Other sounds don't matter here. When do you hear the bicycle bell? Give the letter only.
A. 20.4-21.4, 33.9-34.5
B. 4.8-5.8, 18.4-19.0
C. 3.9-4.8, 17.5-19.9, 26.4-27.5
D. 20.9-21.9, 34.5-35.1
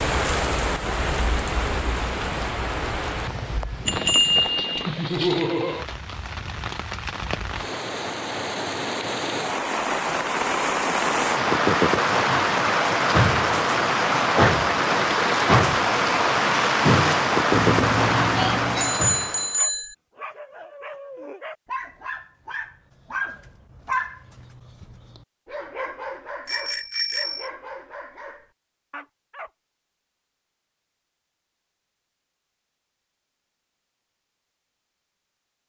C.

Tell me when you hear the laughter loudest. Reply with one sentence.
The volume of the laughter peaks at 5 seconds.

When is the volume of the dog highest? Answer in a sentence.
The loudest moment of the dog is at 24 seconds.